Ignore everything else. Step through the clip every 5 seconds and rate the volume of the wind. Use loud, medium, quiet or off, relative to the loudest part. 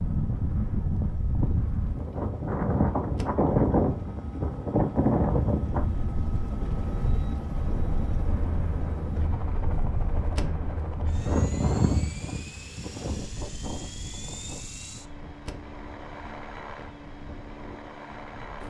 loud, loud, medium, quiet.